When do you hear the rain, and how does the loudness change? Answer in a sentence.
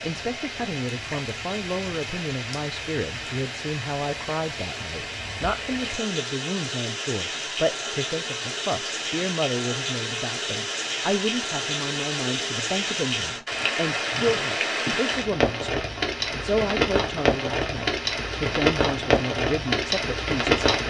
You can hear the rain from 0.0 to 20.8 s, getting louder.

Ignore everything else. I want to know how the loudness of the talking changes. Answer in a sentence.
The volume of the talking stays about the same.